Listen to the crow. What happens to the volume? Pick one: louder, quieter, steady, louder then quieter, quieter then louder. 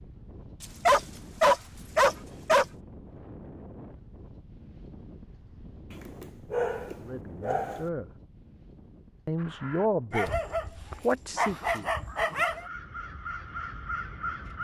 quieter then louder.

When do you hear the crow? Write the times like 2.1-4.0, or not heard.
9.3-14.5.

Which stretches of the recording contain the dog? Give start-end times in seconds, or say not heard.
0.6-2.6, 6.0-7.8, 10.1-12.7.